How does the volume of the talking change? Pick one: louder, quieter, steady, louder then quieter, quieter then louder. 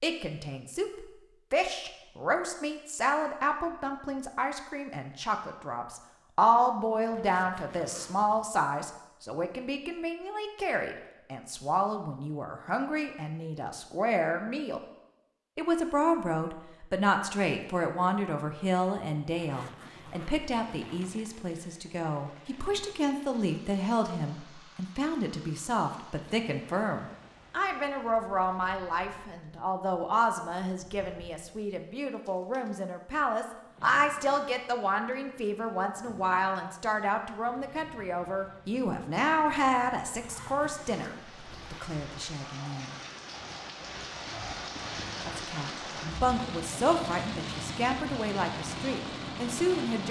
steady.